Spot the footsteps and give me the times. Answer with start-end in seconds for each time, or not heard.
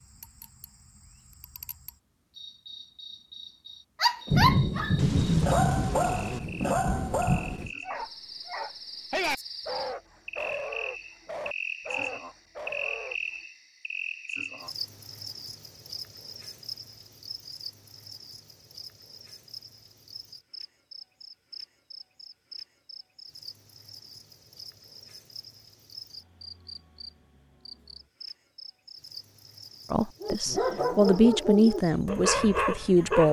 not heard.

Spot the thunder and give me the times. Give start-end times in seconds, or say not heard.
4.3-7.7.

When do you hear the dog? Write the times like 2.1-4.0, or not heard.
4.0-13.2, 30.2-33.2.